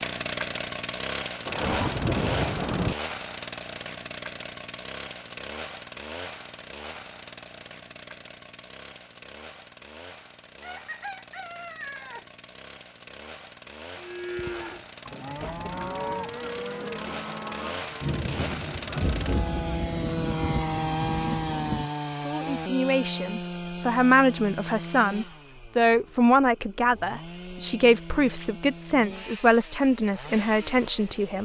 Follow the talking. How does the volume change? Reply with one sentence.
The volume of the talking stays about the same.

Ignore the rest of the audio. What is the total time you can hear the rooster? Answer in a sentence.
You can hear the rooster for 2 seconds altogether.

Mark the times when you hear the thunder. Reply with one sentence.
You can hear the thunder from 1.4 to 3.0 s and from 18.0 to 21.9 s.